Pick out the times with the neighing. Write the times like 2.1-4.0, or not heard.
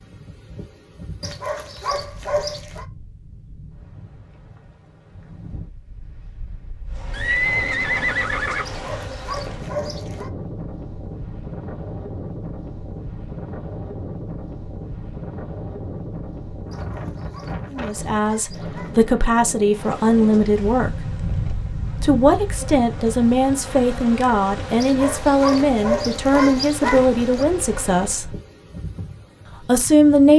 7.1-8.7.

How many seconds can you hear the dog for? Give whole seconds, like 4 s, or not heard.
8 s.